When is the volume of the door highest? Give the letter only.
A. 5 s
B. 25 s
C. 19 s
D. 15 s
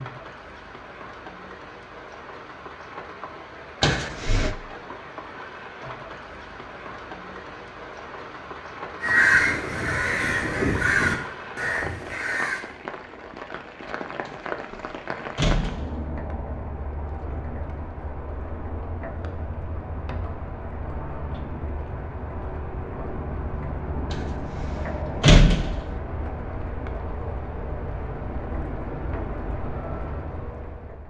B.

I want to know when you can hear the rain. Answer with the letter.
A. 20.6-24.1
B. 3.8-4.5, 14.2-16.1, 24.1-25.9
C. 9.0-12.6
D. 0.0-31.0
D.